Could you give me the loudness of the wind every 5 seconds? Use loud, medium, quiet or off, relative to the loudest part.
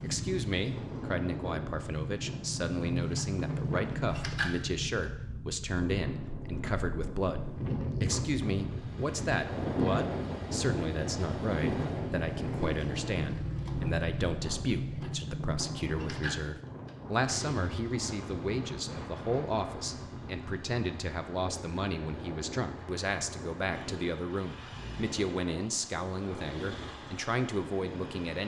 medium, loud, loud, medium, medium, medium.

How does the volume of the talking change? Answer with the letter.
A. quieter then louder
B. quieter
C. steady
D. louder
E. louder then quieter
C.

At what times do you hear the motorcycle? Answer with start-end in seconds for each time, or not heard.
0.0-5.0, 8.6-28.4.